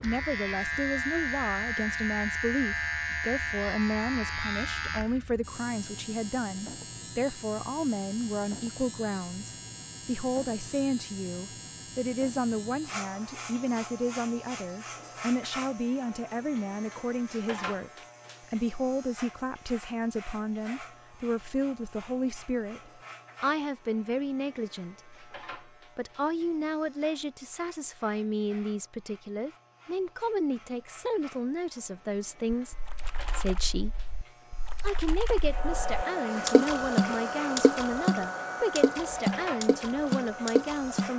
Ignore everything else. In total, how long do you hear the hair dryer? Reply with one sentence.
The hair dryer can be heard for 6 seconds in total.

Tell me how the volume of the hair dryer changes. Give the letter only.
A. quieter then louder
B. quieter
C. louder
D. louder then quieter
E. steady
B.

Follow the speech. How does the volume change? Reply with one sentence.
The loudness of the speech stays about the same.